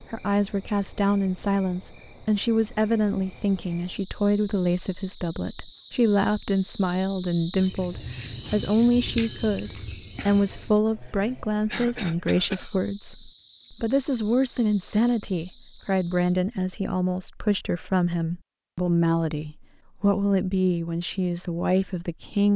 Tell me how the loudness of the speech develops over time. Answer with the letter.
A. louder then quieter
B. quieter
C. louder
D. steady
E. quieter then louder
D.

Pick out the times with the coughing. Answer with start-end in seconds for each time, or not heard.
11.7-12.7.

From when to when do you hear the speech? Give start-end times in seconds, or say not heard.
0.0-22.5.